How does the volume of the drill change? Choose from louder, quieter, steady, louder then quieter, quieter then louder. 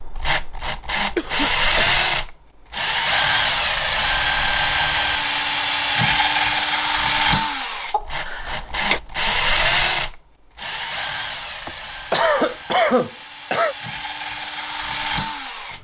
quieter.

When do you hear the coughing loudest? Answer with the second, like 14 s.
13 s.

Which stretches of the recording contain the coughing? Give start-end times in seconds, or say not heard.
1.1-2.0, 7.9-9.0, 11.7-13.8.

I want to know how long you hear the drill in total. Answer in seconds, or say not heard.
16 s.